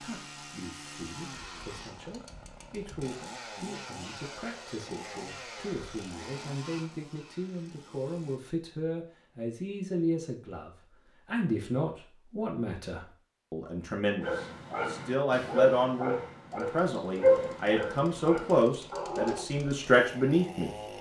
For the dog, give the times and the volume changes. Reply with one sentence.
The dog can be heard from 14.2 to 19.5 s, getting louder then quieter.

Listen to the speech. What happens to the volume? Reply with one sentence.
The volume of the speech goes up.